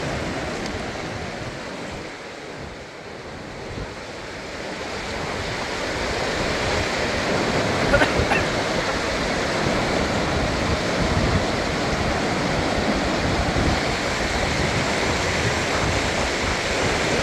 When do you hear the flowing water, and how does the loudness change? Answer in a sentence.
You can hear the flowing water from 0.0 to 17.1 s, getting louder.